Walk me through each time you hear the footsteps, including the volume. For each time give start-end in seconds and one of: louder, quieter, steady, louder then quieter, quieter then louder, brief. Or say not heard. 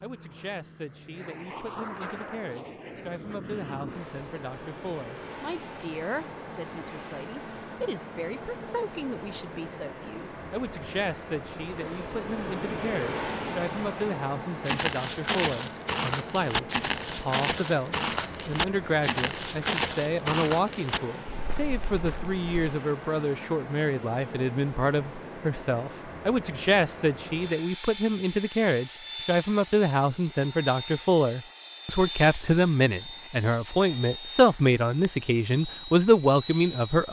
14.7-22.6 quieter.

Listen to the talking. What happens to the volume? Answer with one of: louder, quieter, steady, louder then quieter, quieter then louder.
louder.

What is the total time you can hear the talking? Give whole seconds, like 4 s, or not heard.
37 s.